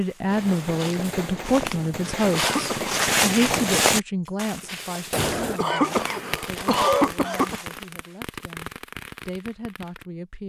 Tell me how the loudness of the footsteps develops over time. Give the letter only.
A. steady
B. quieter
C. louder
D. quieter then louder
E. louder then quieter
E.